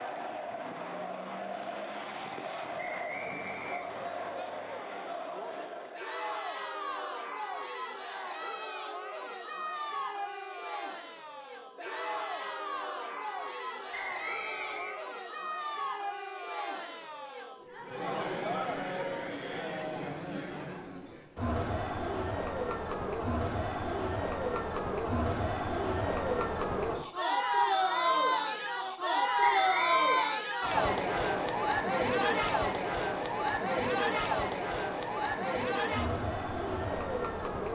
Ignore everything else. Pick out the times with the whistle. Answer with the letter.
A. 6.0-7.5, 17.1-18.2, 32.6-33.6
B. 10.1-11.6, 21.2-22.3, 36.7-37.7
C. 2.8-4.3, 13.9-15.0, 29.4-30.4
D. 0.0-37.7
C.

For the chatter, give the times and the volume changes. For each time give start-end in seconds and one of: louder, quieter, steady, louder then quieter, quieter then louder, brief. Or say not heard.
0.0-37.7 louder.